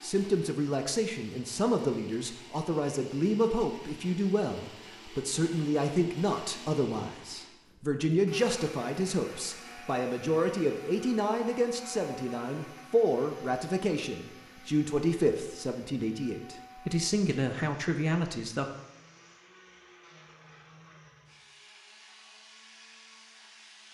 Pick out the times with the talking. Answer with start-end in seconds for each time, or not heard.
0.0-18.6.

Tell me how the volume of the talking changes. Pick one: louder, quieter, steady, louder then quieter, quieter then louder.
steady.